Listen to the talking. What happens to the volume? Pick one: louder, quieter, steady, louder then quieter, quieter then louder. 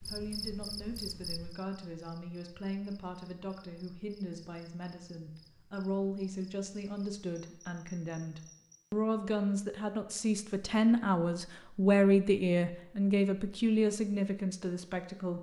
louder.